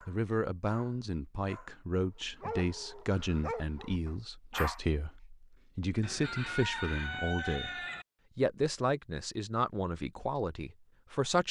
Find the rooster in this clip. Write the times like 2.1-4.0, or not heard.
6.0-8.1.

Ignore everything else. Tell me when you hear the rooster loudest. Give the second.
7 s.